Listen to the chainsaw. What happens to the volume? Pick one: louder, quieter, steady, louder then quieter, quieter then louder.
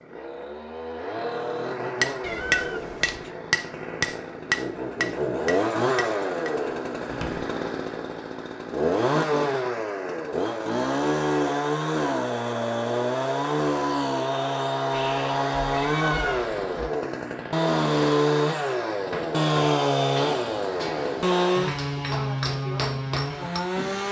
louder.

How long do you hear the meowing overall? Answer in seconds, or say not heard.
3 s.